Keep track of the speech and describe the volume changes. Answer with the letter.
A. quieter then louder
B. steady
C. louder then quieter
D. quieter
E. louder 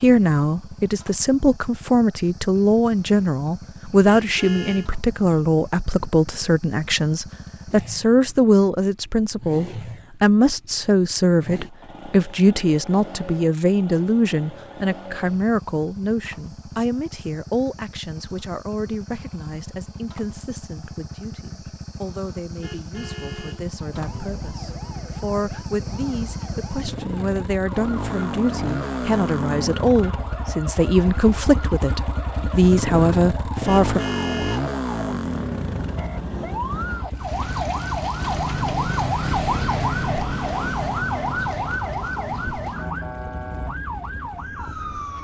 A.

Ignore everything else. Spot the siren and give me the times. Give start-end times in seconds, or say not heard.
23.8-45.1.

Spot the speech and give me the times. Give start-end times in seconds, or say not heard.
0.0-34.0.